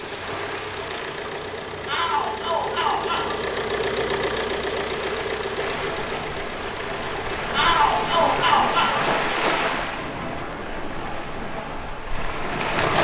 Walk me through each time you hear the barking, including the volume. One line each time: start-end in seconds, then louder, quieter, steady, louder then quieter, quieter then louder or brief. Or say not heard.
not heard.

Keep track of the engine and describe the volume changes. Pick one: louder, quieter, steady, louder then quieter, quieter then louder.
louder then quieter.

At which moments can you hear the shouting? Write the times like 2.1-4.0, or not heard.
1.9-3.5, 7.5-9.0.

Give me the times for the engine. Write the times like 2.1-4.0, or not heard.
0.0-8.6.